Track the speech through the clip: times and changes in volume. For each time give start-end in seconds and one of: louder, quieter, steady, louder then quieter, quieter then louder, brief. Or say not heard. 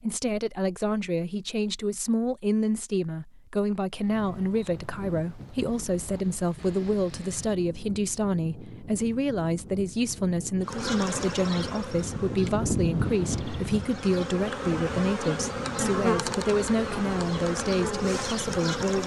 0.0-19.0 steady.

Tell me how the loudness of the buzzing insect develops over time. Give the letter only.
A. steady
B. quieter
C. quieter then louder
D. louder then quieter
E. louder
C.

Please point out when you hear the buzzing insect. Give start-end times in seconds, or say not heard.
10.6-19.0.